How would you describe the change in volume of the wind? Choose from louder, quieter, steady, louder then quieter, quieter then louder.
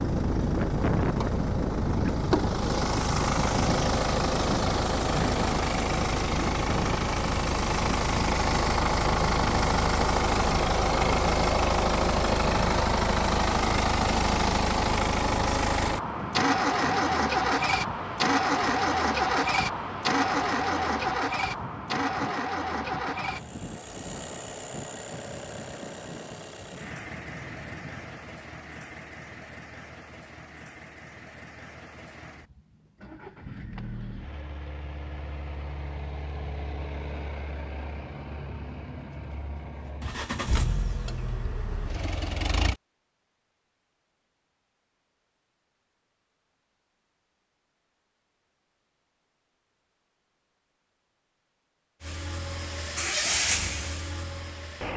quieter.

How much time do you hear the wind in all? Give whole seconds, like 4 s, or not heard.
28 s.